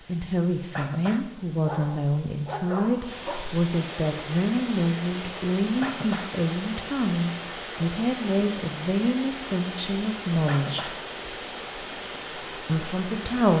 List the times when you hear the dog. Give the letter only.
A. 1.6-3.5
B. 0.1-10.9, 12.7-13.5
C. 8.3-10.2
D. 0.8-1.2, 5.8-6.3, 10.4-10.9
A.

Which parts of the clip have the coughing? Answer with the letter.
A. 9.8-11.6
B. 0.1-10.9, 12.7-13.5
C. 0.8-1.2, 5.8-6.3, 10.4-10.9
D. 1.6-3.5
C.